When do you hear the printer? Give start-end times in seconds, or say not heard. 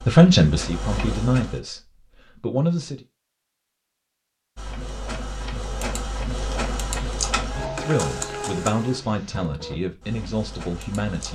0.0-1.6, 4.5-11.3.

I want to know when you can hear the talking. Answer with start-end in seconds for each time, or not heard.
0.1-3.0, 7.5-11.3.